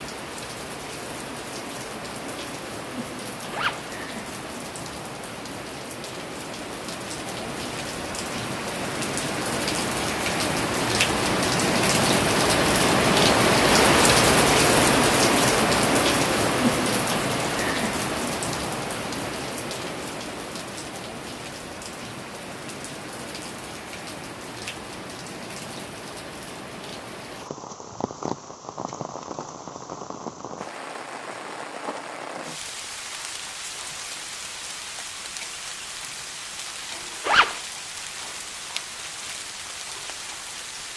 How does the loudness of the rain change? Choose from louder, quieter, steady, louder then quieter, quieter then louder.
louder then quieter.